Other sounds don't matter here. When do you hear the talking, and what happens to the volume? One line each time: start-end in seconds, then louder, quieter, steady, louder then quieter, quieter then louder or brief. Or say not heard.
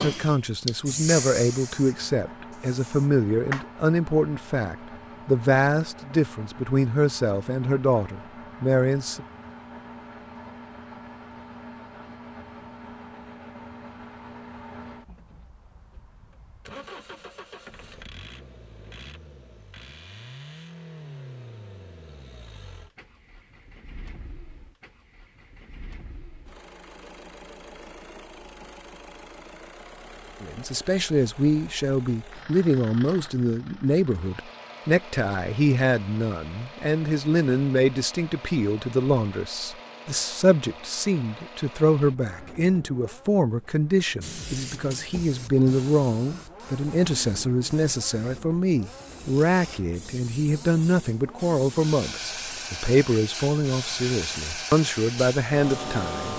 0.0-9.2 steady
30.4-56.3 steady.